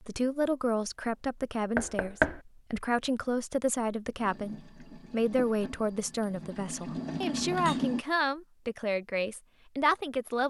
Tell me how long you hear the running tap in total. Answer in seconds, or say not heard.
4 s.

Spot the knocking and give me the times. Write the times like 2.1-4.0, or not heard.
1.8-2.4.